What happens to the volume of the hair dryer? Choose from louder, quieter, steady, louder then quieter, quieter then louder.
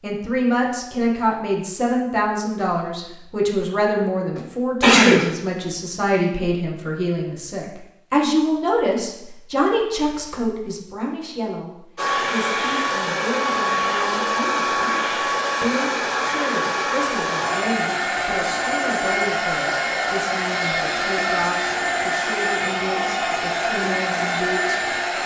steady.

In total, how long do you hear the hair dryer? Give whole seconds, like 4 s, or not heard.
13 s.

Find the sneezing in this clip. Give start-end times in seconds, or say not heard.
4.3-5.2.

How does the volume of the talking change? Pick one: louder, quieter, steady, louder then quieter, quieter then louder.
quieter.